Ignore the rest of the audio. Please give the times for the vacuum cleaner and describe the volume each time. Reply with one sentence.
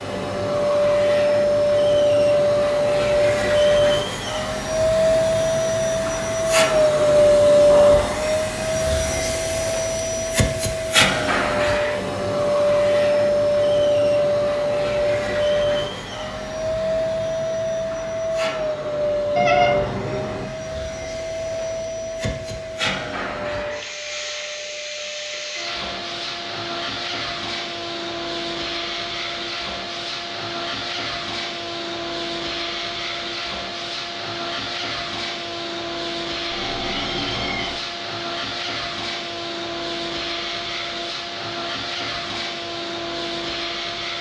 The vacuum cleaner can be heard from 0.0 to 44.1 s, getting quieter.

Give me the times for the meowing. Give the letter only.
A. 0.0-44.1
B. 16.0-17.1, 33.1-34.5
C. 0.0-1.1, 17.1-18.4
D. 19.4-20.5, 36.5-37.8
D.